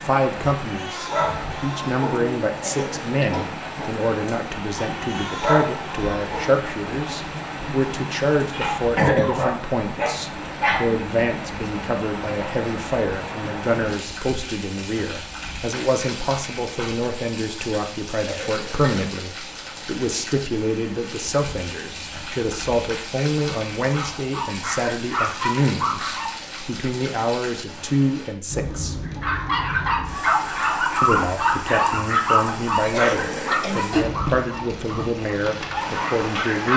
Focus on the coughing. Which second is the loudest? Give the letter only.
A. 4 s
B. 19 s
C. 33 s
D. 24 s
C.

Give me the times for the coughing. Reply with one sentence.
You can hear the coughing from 2.6 to 3.5 s, from 18.2 to 19.1 s and from 32.9 to 33.8 s.